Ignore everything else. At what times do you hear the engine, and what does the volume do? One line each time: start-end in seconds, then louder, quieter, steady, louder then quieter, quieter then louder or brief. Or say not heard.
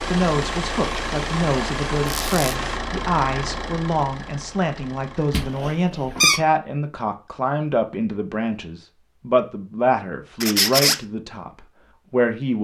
0.0-5.8 quieter.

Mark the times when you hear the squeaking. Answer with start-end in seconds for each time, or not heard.
2.0-2.5, 5.3-6.4, 10.4-11.0.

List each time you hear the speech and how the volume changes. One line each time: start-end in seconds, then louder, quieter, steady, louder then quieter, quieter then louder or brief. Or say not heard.
0.1-12.5 steady.